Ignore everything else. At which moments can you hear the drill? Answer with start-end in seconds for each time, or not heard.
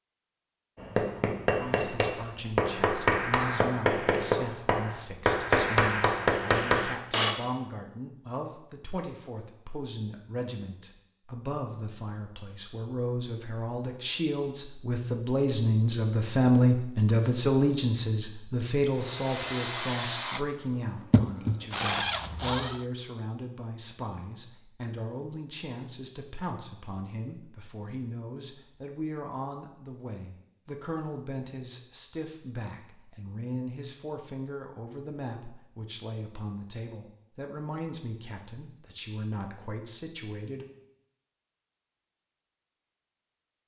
18.9-22.9.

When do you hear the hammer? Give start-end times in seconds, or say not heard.
0.8-7.3.